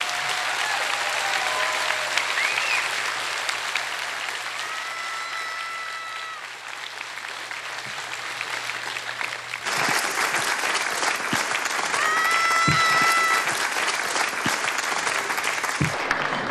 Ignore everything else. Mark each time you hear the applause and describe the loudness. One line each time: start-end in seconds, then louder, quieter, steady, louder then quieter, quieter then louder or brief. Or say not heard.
0.0-16.4 quieter then louder.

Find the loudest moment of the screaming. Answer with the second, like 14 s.
13 s.